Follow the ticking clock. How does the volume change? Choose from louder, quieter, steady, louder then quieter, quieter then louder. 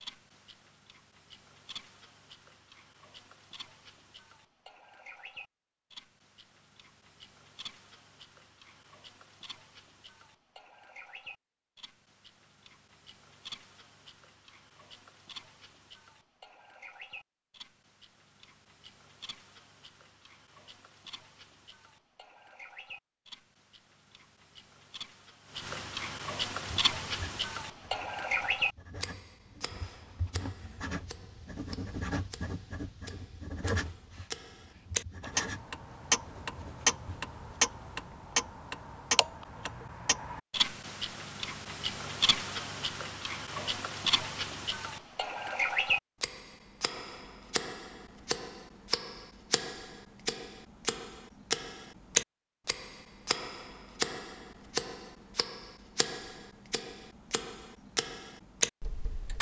louder.